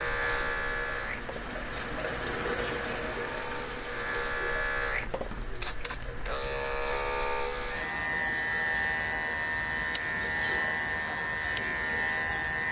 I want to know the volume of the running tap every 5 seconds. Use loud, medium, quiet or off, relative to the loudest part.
loud, medium, medium.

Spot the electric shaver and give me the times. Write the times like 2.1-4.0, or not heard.
0.0-12.6.